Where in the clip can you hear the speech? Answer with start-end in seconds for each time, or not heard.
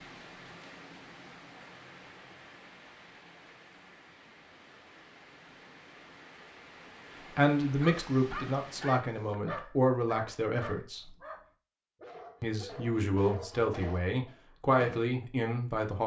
7.3-11.2, 12.4-16.0.